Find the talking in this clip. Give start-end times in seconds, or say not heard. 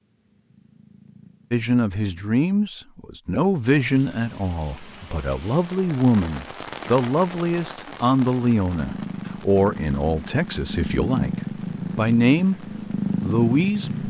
1.5-14.0.